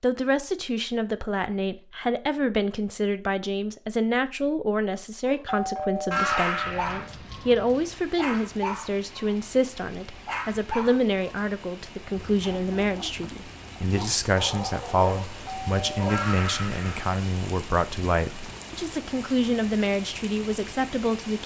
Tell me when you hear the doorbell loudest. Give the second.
6 s.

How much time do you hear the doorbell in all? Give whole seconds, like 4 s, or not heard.
3 s.